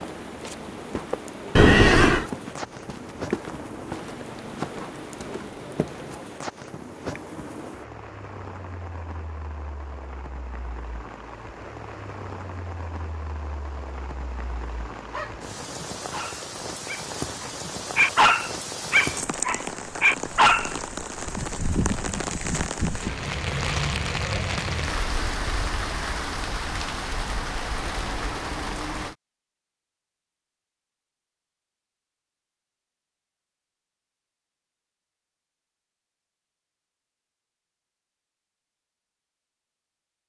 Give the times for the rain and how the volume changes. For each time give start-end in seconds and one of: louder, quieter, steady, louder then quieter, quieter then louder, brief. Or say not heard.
0.0-29.1 louder.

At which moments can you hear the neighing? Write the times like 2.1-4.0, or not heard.
1.6-2.2.